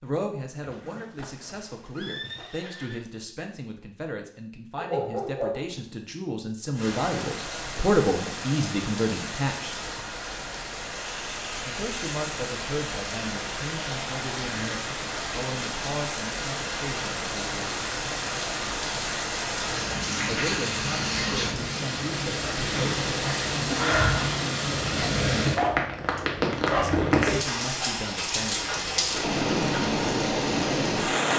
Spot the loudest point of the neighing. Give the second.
2 s.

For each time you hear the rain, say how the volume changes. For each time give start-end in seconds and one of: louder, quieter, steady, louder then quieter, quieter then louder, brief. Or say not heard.
6.8-31.3 louder.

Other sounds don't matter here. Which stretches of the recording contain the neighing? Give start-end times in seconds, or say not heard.
0.6-3.0.